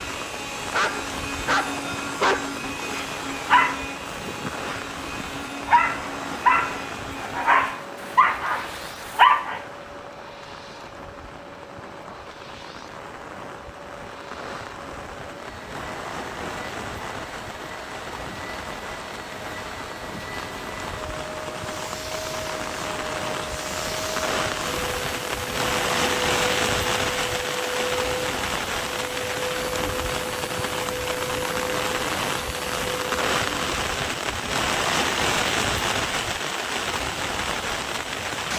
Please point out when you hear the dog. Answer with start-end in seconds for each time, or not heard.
0.7-9.6.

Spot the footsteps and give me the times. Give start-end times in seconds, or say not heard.
not heard.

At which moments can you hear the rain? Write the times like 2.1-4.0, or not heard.
0.0-38.5.